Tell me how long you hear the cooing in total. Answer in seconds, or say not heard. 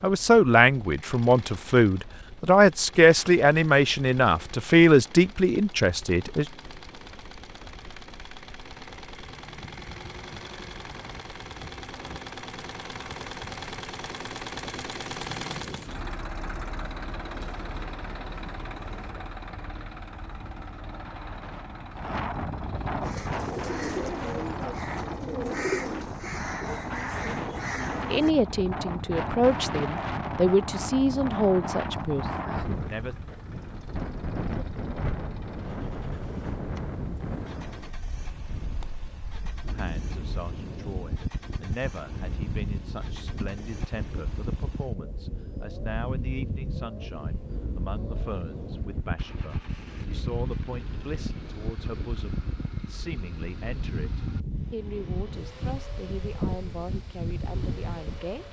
5 s.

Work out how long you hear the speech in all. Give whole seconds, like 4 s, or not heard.
30 s.